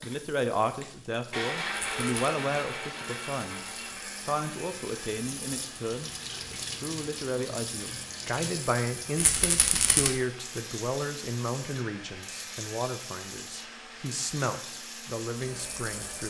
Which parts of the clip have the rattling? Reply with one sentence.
The rattling can be heard from 1.7 to 2.3 s and from 9.2 to 10.1 s.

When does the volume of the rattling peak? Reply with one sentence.
The loudest moment of the rattling is at 10 seconds.